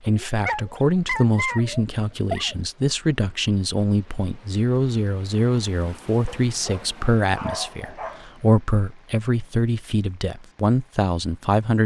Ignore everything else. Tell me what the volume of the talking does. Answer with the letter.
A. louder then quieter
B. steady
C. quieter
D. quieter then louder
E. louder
B.